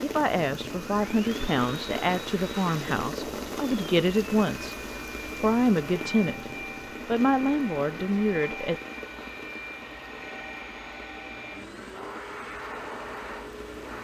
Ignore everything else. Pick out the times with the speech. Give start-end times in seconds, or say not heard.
0.0-4.8, 5.4-6.5, 7.0-8.8.